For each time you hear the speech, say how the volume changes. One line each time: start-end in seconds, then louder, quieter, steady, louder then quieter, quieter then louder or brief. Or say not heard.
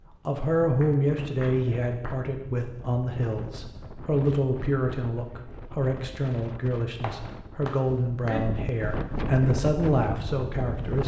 0.2-11.0 steady.